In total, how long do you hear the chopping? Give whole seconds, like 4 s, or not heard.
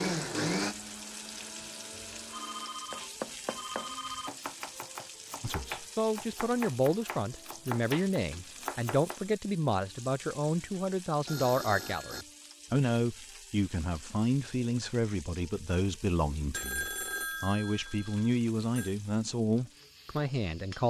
7 s.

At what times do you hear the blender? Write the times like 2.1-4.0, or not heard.
0.0-2.9.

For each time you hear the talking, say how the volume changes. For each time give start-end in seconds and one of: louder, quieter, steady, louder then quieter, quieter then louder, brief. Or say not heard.
5.4-20.8 steady.